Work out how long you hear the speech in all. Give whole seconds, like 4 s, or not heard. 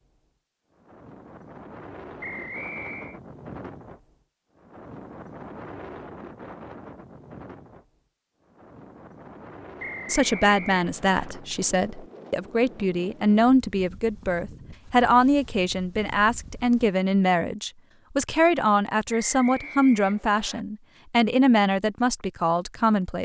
13 s.